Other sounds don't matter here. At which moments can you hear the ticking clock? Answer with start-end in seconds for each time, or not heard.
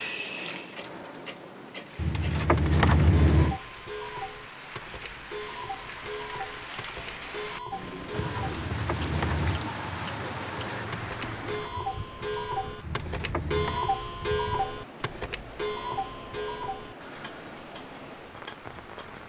0.0-19.2.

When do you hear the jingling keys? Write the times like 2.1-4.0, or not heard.
1.9-3.6, 8.3-9.7, 12.8-13.8.